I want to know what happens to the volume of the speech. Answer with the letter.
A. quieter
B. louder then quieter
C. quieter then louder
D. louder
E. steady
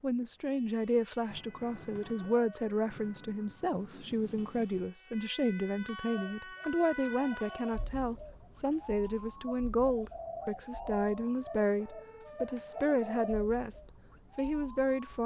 E.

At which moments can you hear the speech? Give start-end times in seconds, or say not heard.
0.0-15.2.